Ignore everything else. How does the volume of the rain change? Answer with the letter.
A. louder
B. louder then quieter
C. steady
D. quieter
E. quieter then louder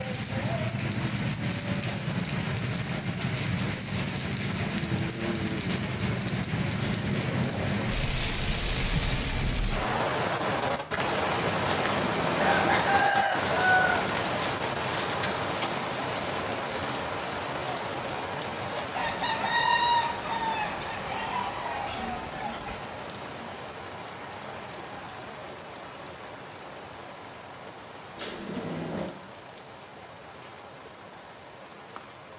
D.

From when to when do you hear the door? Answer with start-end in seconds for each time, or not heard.
6.8-7.8, 11.6-13.1, 28.1-29.1.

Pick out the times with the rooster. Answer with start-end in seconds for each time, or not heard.
12.3-14.0, 18.9-22.8.